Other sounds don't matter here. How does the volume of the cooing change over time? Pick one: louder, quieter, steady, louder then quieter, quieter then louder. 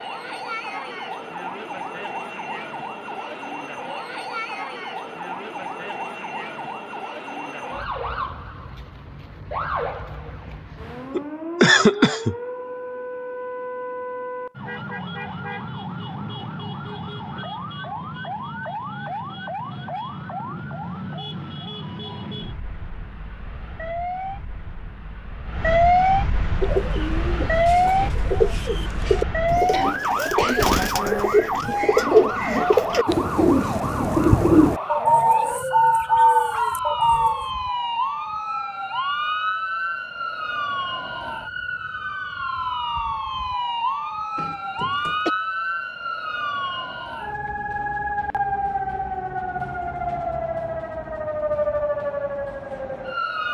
louder.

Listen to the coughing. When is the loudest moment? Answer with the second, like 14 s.
12 s.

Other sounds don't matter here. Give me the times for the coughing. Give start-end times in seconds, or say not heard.
11.1-12.3, 29.7-30.7, 44.4-45.3.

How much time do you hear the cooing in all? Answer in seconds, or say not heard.
11 s.